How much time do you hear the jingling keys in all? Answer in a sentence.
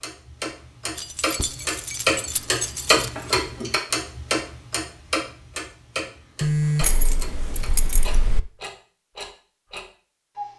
The jingling keys can be heard for 4 seconds in total.